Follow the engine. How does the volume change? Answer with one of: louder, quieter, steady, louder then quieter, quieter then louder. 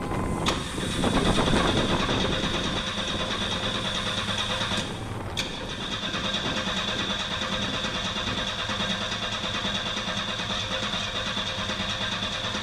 steady.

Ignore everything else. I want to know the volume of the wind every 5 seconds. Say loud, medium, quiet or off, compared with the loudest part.
loud, medium, off.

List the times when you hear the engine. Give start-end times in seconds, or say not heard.
0.0-12.5.